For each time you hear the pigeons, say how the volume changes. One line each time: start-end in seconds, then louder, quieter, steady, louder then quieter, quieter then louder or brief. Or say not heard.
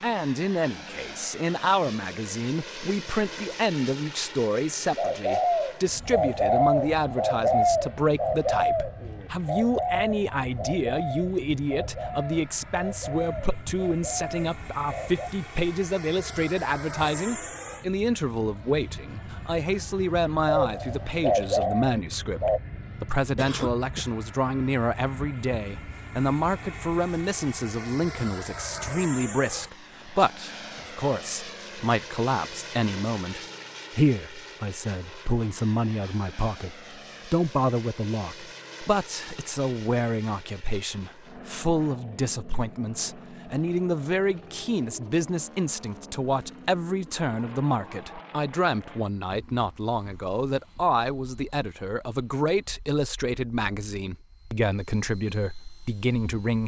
4.7-15.3 quieter
20.4-22.6 brief.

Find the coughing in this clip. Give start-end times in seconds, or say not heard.
23.4-24.1.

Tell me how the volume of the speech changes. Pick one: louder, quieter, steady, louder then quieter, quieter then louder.
steady.